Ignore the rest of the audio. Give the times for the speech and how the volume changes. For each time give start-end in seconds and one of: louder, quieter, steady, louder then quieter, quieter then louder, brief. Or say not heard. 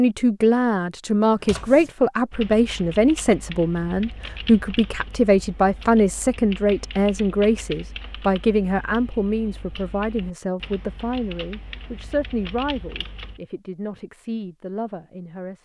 0.0-15.5 quieter.